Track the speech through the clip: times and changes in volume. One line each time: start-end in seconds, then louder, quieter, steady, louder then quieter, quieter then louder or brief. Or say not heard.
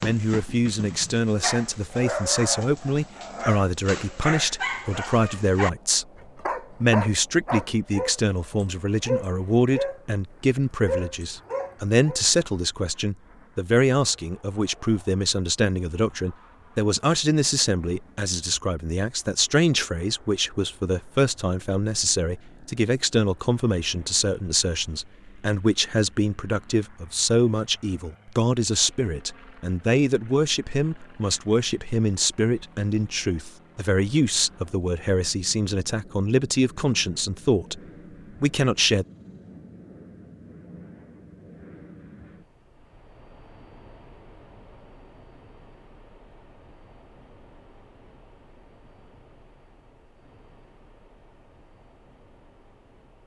0.0-6.0 steady
6.7-37.8 steady
38.4-39.0 brief.